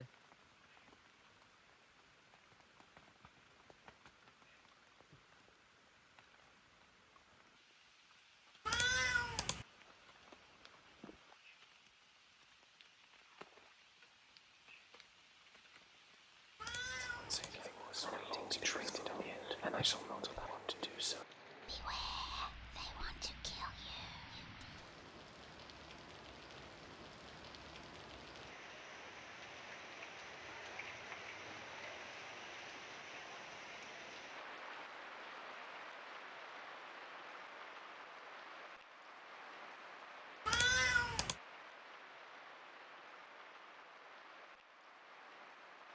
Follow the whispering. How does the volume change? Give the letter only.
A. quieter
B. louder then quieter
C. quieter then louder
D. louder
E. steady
A.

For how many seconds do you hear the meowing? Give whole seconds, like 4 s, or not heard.
3 s.